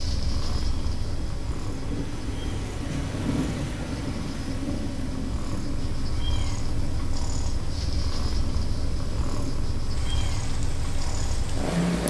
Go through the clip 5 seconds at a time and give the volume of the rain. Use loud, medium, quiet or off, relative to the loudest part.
loud, medium, medium.